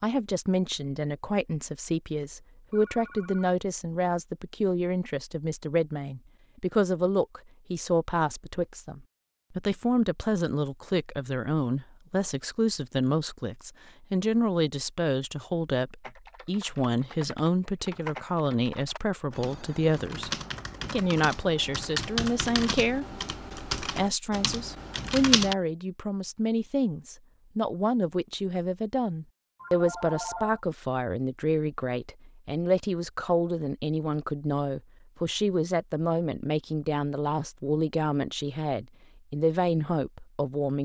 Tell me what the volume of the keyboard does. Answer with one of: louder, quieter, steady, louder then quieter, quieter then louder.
louder.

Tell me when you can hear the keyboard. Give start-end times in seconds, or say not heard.
16.0-25.6.